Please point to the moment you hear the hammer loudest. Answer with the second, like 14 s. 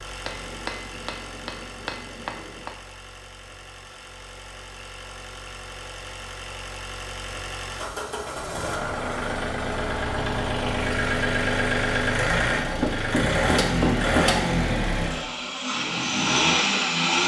14 s.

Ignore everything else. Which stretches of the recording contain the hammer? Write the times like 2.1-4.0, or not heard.
0.2-2.7, 12.8-14.4.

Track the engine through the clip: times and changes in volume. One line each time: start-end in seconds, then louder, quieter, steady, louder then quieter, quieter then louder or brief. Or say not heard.
0.0-17.2 louder.